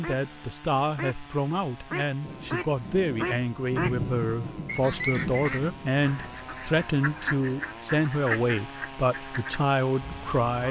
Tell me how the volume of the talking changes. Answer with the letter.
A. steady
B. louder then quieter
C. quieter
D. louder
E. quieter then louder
A.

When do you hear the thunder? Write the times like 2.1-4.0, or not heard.
2.2-6.3.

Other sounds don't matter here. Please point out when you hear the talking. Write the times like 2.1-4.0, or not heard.
0.0-10.6.